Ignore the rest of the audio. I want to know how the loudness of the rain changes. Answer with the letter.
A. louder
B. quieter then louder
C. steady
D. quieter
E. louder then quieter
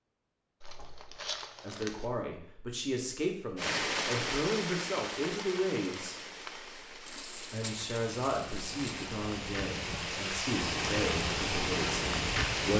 B.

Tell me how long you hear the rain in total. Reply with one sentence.
You can hear the rain for 9 seconds altogether.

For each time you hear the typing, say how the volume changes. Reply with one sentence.
You can't hear the typing here.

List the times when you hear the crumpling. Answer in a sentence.
You can hear the crumpling from 0.6 to 2.0 s and from 7.0 to 9.1 s.